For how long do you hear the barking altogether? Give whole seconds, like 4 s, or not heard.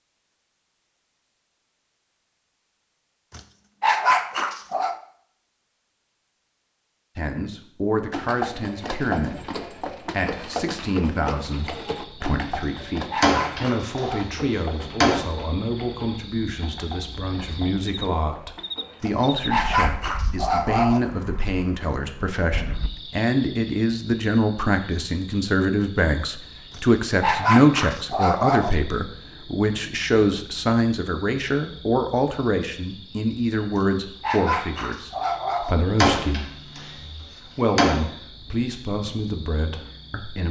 9 s.